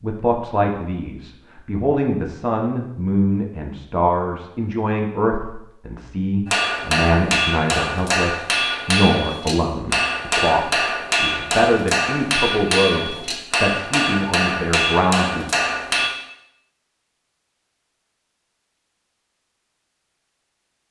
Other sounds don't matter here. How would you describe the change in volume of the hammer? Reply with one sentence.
The loudness of the hammer stays about the same.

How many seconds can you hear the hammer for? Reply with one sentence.
The hammer can be heard for 10 seconds in total.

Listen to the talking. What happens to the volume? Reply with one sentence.
The volume of the talking stays about the same.